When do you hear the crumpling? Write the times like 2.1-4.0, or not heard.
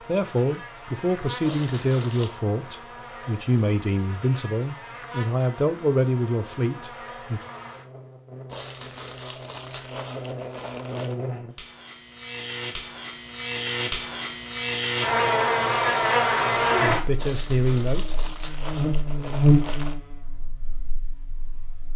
1.4-2.4, 8.4-11.2, 17.1-19.9.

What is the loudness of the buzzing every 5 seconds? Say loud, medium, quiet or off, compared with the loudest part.
quiet, quiet, medium, loud, quiet.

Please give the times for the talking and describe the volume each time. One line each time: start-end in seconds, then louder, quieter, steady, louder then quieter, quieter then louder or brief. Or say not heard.
0.1-7.4 steady
16.8-18.2 brief.